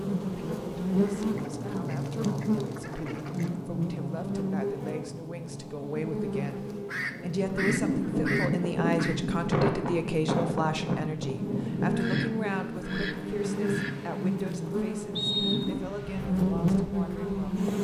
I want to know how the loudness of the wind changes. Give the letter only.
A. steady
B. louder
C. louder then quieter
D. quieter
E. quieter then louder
D.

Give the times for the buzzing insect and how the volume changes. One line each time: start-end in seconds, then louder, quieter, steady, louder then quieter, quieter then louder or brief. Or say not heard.
0.0-17.8 quieter then louder.